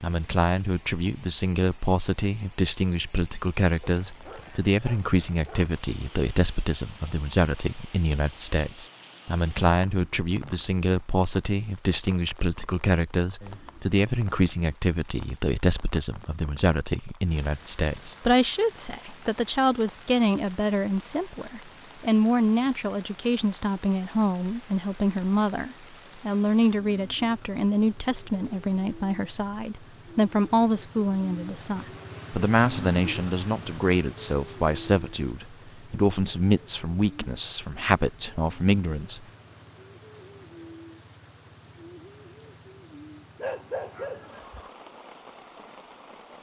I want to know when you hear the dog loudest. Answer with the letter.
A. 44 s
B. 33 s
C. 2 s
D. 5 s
A.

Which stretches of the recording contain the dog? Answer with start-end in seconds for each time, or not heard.
3.8-5.8, 43.4-44.7.